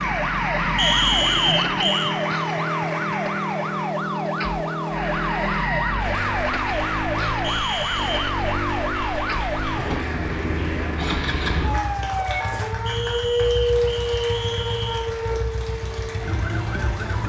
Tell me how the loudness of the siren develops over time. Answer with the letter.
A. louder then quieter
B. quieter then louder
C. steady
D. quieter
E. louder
C.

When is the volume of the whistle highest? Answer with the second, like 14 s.
1 s.